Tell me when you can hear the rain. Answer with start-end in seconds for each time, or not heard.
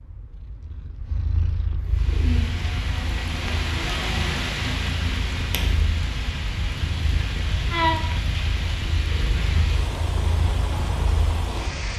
1.8-11.9.